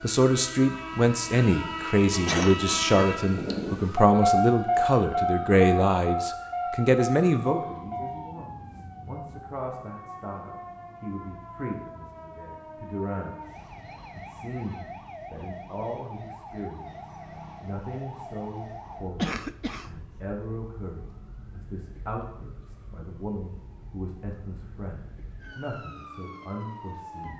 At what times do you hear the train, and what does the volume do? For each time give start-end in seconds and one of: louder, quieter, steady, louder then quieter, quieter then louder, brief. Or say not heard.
0.0-8.3 louder then quieter.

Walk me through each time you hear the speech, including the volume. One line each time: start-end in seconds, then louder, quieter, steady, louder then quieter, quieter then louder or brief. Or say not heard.
0.0-27.3 quieter.